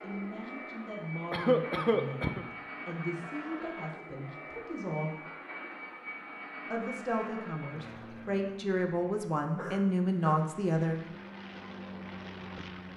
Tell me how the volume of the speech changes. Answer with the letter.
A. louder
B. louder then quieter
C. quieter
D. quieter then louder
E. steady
A.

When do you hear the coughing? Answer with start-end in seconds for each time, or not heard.
1.3-2.5, 9.6-10.4.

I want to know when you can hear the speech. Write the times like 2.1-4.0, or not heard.
0.0-5.2, 6.7-11.0.